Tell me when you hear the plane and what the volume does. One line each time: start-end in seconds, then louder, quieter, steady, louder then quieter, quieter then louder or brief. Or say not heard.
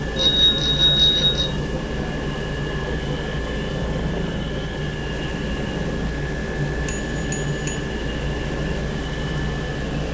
0.0-10.0 steady.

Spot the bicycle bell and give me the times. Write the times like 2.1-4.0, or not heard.
0.1-1.5, 6.8-7.8.